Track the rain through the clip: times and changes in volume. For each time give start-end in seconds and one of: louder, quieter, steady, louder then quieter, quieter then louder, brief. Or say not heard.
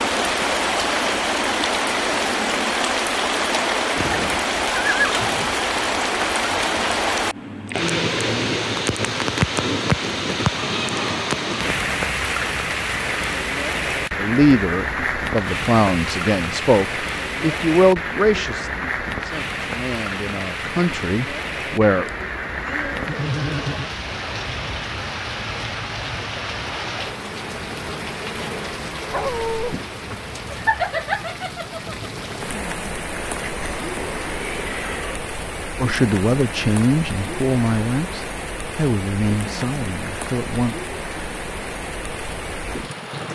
0.0-43.3 quieter.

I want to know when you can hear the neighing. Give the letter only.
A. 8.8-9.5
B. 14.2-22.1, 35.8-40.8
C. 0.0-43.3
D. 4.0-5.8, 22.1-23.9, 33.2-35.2
D.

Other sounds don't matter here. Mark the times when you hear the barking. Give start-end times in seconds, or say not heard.
29.1-29.8.